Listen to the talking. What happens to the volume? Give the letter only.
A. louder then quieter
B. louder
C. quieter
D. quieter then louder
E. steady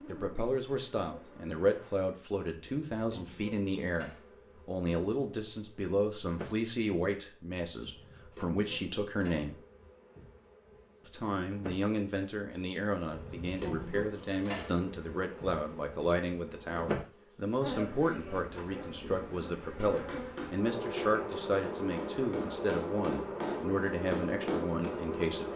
E.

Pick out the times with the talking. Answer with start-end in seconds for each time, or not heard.
0.1-9.6, 11.1-25.5.